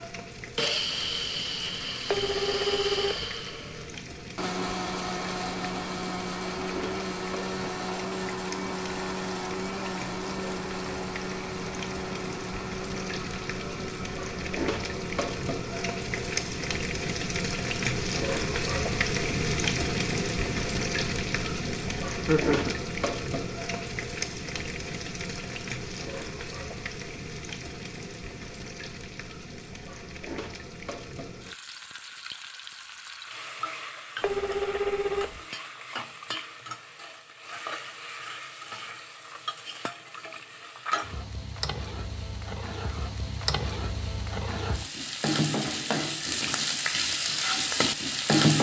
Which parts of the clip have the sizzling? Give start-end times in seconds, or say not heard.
0.0-48.5.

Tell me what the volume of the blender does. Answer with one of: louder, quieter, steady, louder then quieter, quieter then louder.
quieter.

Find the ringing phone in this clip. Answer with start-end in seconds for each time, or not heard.
2.0-3.3, 34.2-35.4.